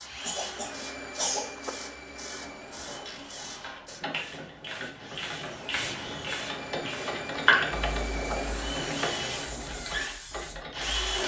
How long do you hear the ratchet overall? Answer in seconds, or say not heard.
9 s.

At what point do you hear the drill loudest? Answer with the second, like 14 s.
11 s.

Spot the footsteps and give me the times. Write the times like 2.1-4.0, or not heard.
not heard.